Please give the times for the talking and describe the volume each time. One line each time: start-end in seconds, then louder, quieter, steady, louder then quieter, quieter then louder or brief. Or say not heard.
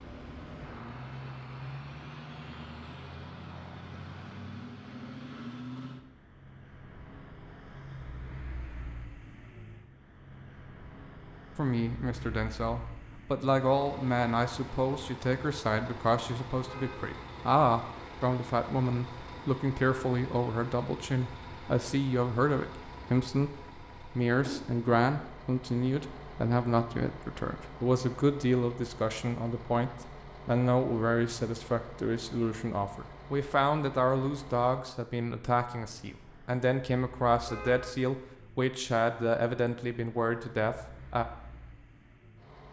11.6-41.2 steady.